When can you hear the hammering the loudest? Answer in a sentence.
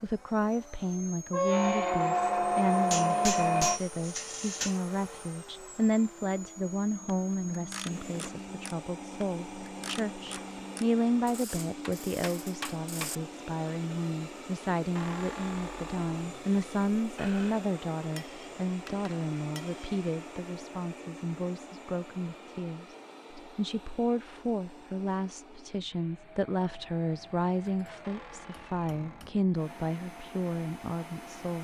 The loudest moment of the hammering is at 4 seconds.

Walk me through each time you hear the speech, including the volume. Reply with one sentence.
You can hear the speech from 0.0 to 31.6 s, at a steady volume.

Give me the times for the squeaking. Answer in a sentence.
You can hear the squeaking from 1.3 to 3.8 s, from 14.9 to 17.6 s and from 28.0 to 29.4 s.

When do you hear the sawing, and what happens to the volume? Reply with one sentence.
You can't hear the sawing here.